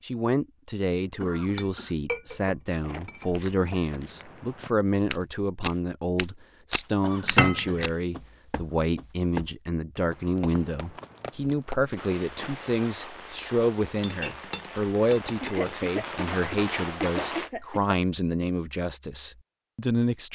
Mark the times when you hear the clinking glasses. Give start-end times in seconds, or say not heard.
1.4-3.9, 7.2-7.8, 14.0-15.8.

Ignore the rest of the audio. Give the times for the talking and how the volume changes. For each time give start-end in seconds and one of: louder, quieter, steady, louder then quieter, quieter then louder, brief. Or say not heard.
0.0-20.2 steady.